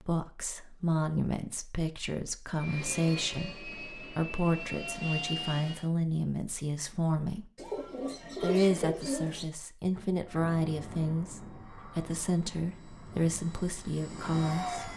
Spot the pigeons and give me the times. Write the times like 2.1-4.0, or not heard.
7.5-9.4.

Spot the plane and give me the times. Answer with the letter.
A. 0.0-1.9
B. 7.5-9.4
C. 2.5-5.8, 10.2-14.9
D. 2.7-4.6
C.